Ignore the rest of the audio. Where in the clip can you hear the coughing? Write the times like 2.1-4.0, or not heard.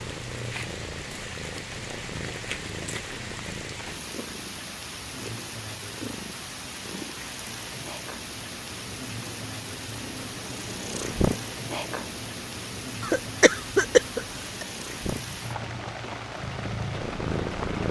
13.0-14.7.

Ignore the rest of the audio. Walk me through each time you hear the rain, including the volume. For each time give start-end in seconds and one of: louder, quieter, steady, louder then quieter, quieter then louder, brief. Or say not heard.
0.0-17.8 steady.